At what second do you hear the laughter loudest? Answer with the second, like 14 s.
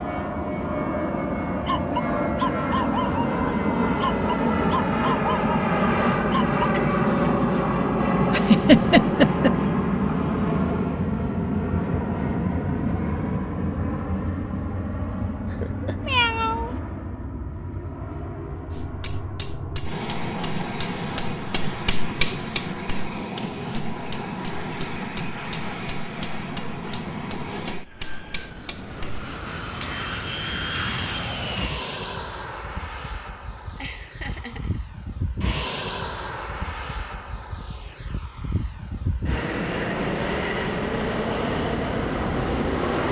9 s.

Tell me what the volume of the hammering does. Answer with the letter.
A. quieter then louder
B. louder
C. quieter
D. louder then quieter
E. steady
D.